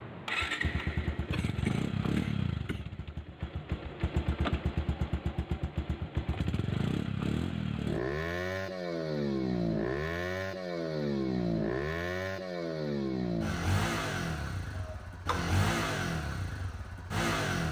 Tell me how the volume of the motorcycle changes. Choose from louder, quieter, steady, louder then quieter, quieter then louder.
steady.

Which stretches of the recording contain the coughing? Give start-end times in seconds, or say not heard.
1.3-2.8, 14.8-15.6.